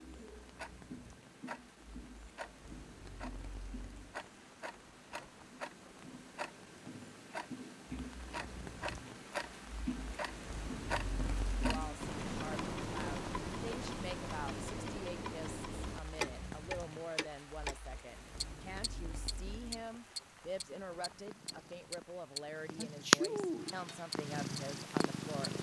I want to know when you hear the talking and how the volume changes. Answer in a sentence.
You can hear the talking from 11.7 to 25.5 s, at a steady volume.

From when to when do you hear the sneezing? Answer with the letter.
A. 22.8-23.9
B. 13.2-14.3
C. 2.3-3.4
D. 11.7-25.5
A.